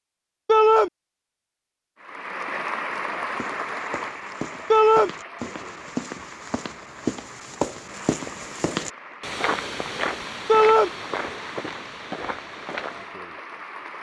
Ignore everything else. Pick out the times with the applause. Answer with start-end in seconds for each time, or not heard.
2.0-13.9.